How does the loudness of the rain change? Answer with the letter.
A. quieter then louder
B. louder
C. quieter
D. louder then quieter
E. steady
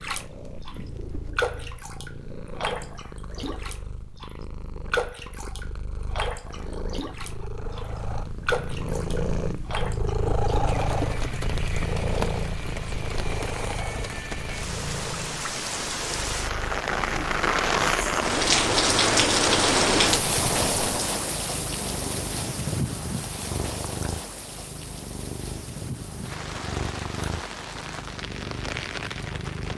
D.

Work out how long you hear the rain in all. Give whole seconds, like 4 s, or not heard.
30 s.